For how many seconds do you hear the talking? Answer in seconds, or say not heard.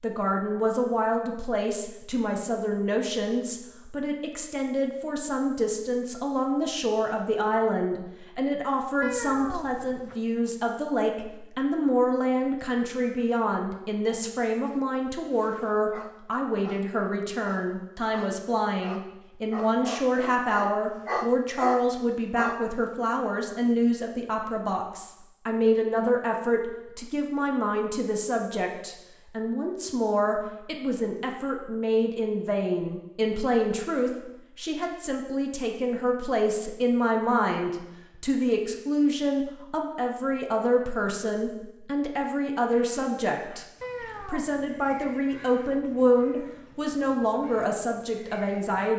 48 s.